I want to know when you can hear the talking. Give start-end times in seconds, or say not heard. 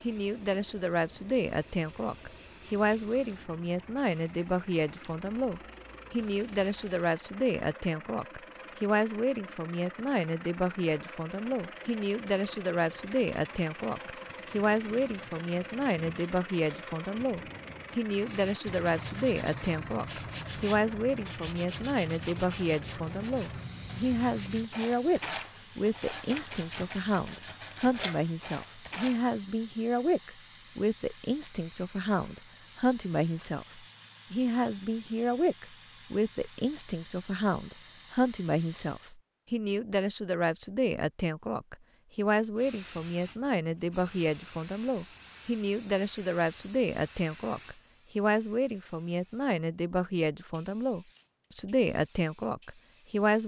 0.0-53.4.